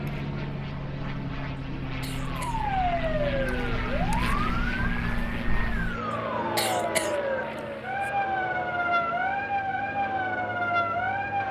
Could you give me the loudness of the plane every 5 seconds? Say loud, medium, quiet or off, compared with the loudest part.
loud, medium, medium.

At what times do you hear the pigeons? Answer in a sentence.
You can't hear the pigeons here.